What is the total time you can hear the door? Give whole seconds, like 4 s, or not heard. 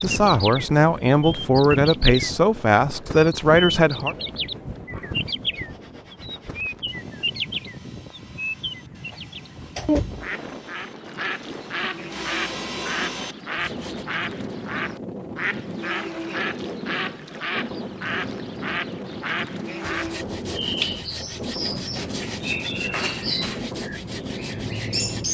3 s.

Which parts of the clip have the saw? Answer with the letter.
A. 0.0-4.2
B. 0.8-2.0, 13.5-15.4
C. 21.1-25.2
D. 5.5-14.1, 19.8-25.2
D.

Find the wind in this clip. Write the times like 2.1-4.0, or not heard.
0.0-25.2.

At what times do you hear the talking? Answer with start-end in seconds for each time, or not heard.
0.0-4.2.